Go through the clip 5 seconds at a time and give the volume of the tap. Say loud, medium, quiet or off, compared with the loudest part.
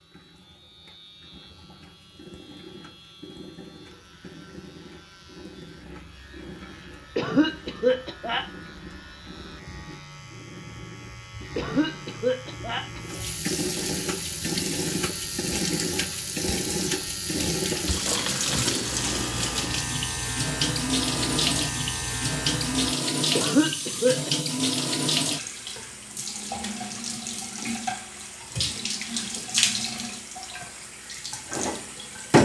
quiet, quiet, medium, loud, loud, loud, loud.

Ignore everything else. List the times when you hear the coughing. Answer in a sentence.
You can hear the coughing from 7.2 to 8.4 s, from 11.6 to 13.2 s and from 23.4 to 24.3 s.